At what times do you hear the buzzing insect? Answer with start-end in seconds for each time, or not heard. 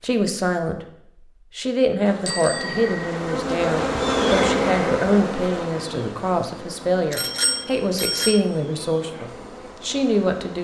2.0-10.5.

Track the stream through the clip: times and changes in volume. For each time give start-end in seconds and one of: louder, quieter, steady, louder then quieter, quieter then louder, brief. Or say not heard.
not heard.